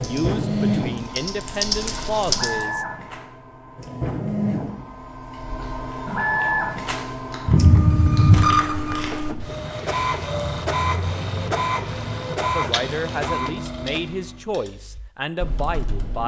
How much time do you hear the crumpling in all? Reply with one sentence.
You can hear the crumpling for 2 seconds altogether.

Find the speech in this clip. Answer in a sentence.
The speech can be heard from 0.0 to 2.9 s and from 12.4 to 16.2 s.